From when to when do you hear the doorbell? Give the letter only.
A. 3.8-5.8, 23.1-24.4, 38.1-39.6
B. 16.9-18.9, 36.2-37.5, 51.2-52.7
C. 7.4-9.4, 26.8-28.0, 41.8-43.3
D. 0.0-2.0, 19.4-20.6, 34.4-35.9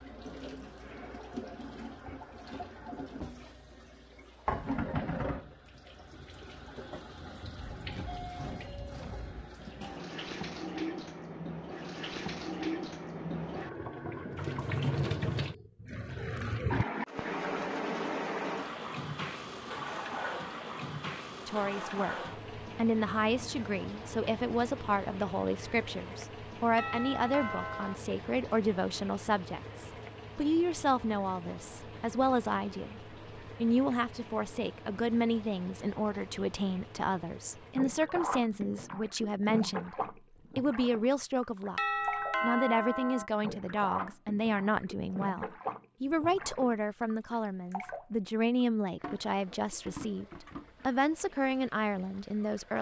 C.